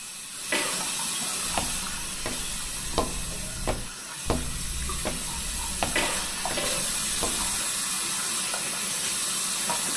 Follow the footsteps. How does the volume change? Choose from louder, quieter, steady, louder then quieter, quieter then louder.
louder then quieter.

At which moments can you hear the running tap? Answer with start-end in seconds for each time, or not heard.
0.0-9.9.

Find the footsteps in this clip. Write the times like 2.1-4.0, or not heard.
1.4-7.7.